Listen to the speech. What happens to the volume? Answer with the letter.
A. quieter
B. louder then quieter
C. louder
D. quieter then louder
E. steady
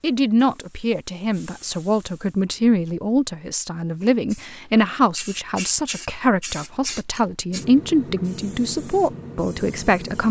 E.